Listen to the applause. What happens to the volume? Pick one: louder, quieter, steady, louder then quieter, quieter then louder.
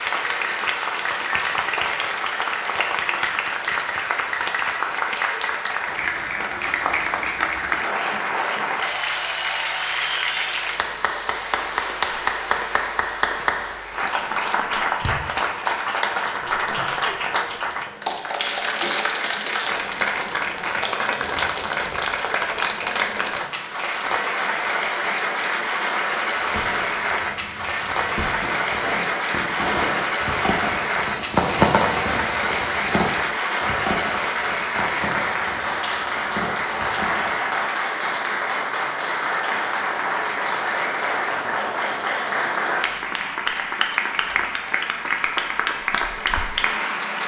steady.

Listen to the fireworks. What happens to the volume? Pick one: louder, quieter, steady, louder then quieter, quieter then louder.
louder then quieter.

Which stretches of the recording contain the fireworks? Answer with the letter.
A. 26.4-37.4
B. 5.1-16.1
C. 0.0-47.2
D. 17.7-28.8
A.